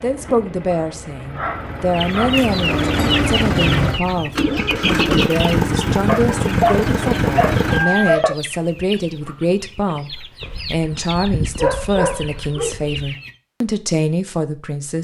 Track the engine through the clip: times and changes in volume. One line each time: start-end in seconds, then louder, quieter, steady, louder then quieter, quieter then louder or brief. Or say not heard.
0.0-8.2 louder.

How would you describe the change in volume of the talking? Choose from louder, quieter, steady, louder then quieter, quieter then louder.
steady.